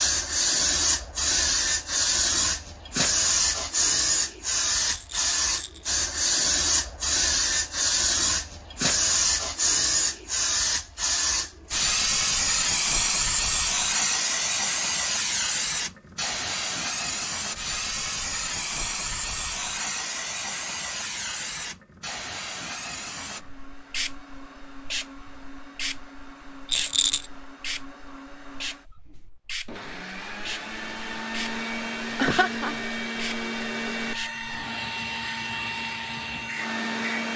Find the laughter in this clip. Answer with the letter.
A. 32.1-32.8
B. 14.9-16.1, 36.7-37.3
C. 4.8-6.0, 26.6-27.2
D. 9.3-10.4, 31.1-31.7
A.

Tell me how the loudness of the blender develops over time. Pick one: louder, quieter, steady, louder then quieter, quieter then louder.
louder.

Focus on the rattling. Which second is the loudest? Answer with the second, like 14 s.
27 s.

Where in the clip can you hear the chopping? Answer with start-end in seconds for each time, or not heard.
not heard.